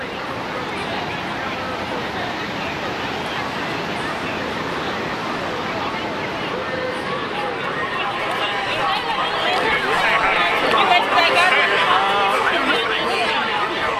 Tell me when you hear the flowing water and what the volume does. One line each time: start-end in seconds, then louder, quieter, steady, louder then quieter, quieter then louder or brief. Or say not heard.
0.0-13.9 quieter.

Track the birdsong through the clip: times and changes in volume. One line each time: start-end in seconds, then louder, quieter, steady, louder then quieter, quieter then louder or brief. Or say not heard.
not heard.